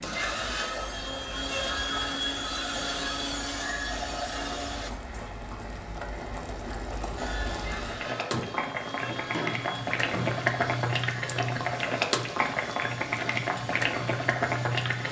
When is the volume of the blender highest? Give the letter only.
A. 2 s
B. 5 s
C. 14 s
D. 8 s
A.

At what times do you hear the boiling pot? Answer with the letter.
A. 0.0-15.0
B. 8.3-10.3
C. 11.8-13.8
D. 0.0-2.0
A.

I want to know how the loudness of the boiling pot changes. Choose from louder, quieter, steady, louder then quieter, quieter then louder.
louder.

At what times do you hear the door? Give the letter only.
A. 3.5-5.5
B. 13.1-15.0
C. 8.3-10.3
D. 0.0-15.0
C.